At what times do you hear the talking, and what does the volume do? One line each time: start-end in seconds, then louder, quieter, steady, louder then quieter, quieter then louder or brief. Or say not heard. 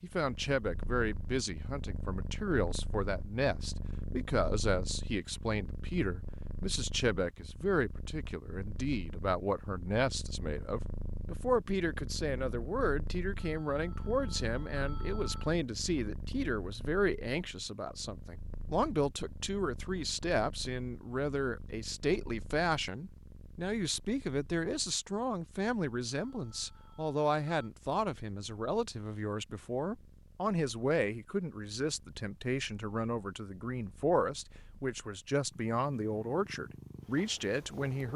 0.0-38.1 steady.